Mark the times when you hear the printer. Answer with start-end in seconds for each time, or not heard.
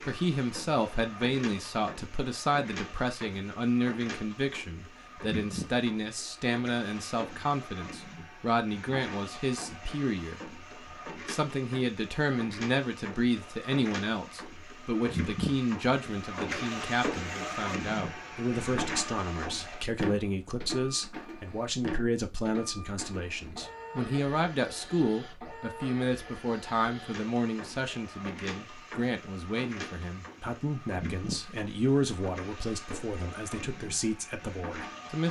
0.0-35.2.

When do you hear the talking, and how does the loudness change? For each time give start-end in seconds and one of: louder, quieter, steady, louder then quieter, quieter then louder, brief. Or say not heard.
0.0-35.2 steady.